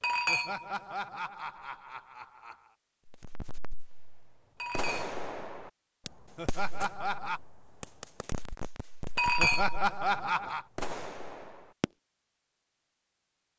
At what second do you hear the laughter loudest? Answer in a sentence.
The volume of the laughter peaks at 10 seconds.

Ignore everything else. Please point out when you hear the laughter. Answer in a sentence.
The laughter can be heard from 0.2 to 2.7 s, from 6.3 to 7.4 s and from 9.3 to 10.7 s.